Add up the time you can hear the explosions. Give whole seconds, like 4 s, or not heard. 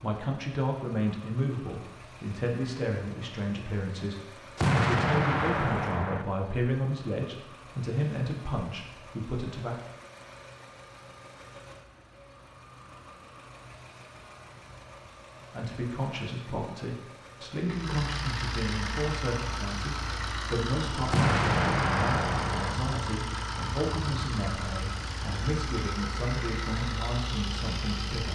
3 s.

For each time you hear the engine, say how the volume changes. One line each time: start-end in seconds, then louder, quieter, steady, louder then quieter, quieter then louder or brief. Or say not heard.
0.0-28.2 louder.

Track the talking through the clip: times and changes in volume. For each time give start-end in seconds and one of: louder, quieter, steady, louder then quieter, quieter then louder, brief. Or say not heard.
0.0-9.8 steady
15.5-28.2 steady.